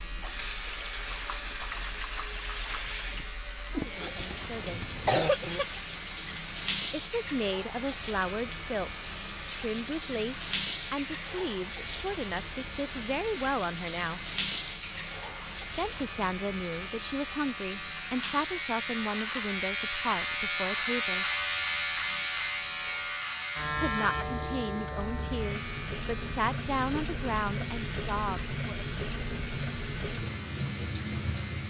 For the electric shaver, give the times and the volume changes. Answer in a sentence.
You can hear the electric shaver from 0.0 to 31.6 s, getting louder then quieter.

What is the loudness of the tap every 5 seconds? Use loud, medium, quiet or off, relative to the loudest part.
loud, loud, loud, medium, medium, loud, loud.